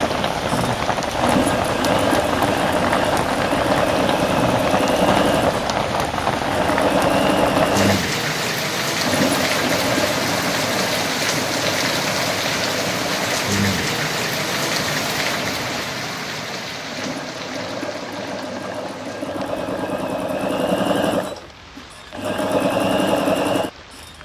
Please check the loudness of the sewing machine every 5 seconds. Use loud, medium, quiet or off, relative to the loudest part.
loud, loud, medium, medium, loud.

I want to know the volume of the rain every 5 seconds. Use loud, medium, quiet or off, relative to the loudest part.
loud, loud, loud, medium, quiet.